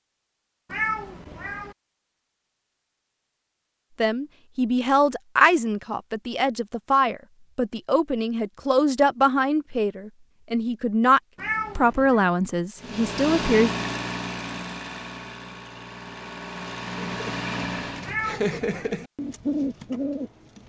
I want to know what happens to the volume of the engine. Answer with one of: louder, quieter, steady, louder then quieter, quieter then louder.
quieter then louder.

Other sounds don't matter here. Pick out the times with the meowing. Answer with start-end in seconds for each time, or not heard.
0.7-1.8, 11.3-12.2, 18.1-18.9.